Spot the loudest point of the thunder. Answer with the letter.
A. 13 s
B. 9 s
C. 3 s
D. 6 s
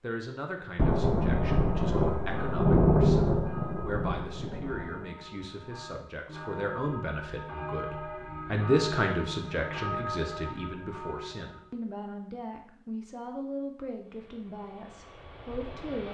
C.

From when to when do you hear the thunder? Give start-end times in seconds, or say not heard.
0.8-5.0.